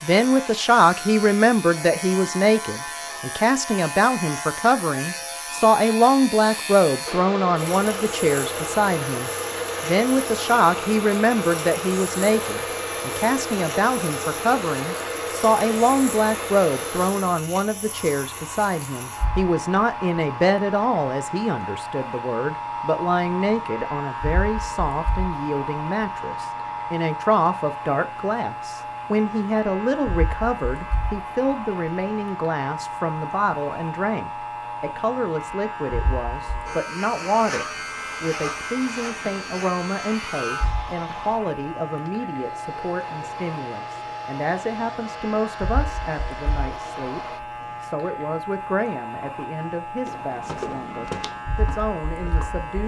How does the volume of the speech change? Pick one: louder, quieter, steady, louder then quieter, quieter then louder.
quieter.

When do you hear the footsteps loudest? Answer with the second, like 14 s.
51 s.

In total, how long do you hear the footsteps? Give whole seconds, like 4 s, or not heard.
3 s.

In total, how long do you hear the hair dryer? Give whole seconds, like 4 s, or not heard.
40 s.